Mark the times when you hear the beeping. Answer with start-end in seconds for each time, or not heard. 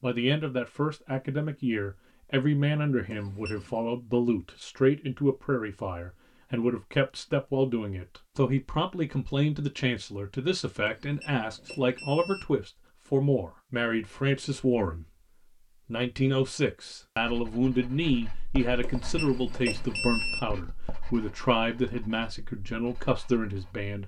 3.0-3.9, 10.8-12.4, 18.8-20.4.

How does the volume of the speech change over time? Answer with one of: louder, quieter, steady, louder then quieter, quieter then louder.
steady.